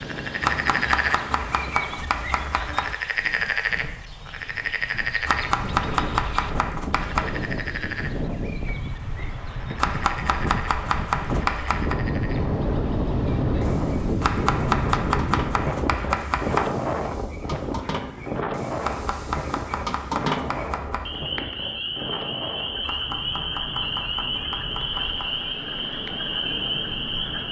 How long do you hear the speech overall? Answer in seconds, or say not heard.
not heard.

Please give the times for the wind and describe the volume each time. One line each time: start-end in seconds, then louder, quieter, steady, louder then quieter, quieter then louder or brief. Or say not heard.
0.0-27.4 louder then quieter.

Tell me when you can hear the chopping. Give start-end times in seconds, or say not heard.
0.4-3.0, 5.2-7.4, 9.8-12.0, 14.2-16.7, 18.8-21.1, 22.8-25.4.